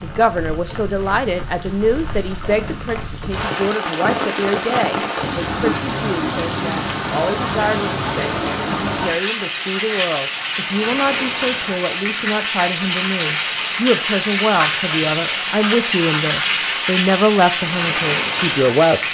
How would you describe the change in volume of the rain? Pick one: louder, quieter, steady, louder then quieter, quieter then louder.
louder.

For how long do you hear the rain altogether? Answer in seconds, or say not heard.
19 s.